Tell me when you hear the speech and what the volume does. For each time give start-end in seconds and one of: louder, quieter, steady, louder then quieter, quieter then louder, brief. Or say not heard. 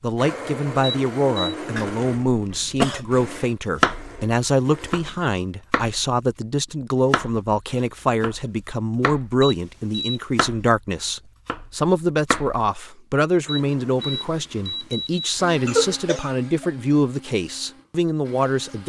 0.0-18.8 steady.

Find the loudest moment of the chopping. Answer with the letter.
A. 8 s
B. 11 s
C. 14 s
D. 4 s
D.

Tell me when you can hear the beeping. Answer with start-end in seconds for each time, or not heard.
0.8-1.6, 9.4-10.2, 13.4-15.4.